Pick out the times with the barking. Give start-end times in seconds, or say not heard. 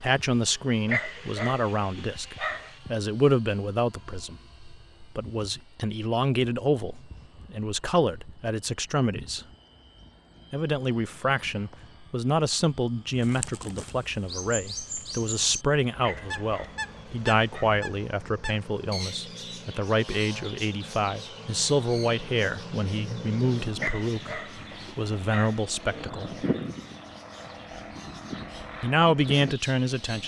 0.8-2.8, 16.0-17.7, 23.8-26.1.